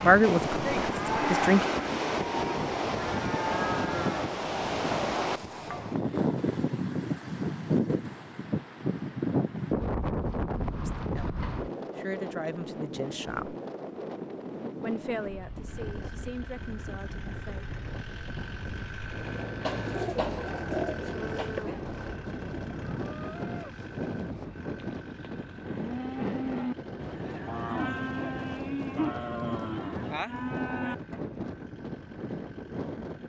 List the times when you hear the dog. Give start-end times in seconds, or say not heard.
not heard.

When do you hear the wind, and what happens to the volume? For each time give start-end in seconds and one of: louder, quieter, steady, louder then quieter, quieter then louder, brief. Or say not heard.
0.0-33.2 quieter.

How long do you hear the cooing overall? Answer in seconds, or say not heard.
2 s.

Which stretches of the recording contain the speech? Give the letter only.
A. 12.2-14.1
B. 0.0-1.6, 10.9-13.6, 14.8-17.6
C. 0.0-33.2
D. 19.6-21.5
B.